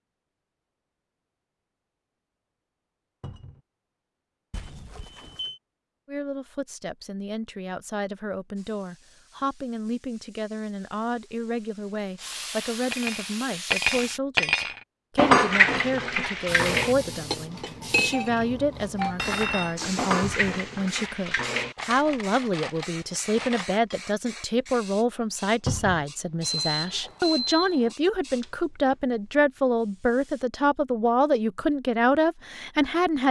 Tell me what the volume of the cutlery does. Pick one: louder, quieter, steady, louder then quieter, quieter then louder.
quieter.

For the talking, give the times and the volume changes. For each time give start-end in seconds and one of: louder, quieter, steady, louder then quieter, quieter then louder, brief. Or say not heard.
6.0-33.2 louder.